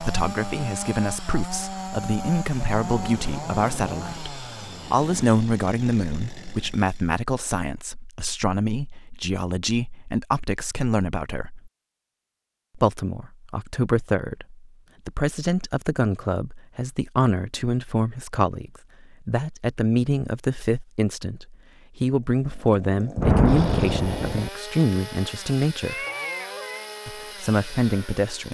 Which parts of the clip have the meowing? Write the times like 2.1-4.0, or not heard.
25.8-26.9.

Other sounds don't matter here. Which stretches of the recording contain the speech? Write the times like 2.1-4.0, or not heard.
0.0-11.7, 12.8-26.1, 27.1-28.4.